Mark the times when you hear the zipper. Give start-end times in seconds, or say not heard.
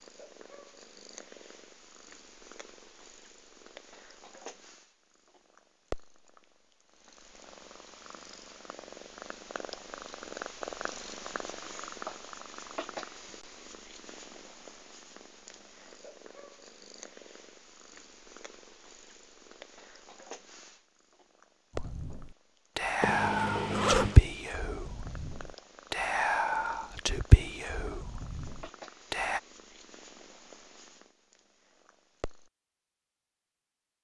23.0-24.2.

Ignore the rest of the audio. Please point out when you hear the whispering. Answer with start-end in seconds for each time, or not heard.
21.8-29.4.